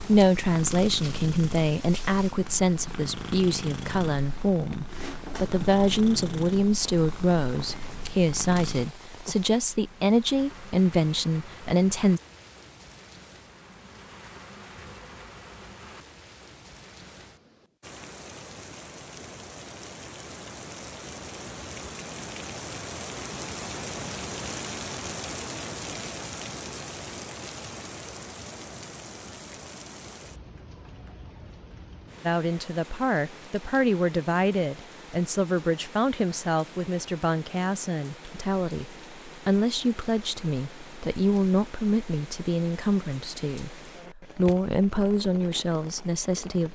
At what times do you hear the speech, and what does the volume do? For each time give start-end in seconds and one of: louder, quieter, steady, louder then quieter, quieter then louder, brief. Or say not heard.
0.0-12.2 steady
32.2-46.7 steady.